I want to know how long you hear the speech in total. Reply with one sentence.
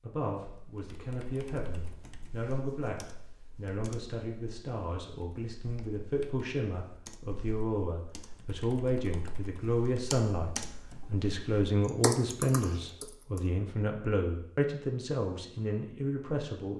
You can hear the speech for 17 seconds altogether.